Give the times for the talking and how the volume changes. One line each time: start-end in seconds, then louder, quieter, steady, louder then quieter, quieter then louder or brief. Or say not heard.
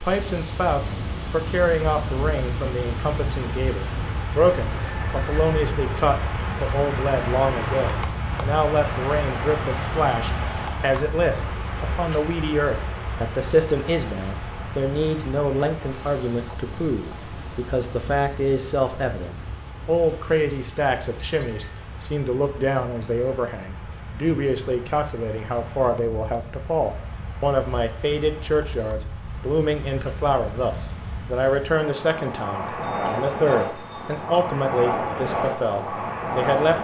0.0-36.7 steady.